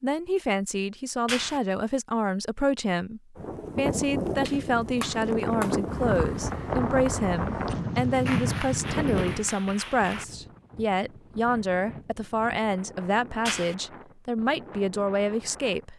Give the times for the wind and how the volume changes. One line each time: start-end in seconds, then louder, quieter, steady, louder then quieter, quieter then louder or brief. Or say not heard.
3.4-15.9 quieter.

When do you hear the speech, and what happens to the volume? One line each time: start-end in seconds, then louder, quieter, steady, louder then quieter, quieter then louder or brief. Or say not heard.
0.0-15.9 steady.